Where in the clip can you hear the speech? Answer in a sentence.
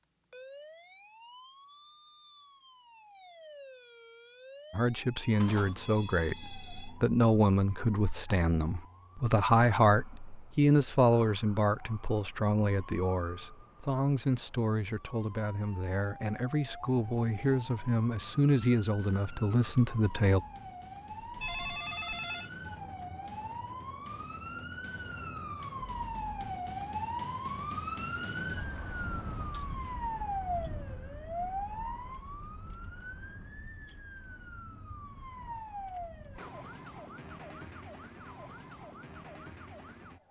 You can hear the speech from 4.7 to 20.4 s.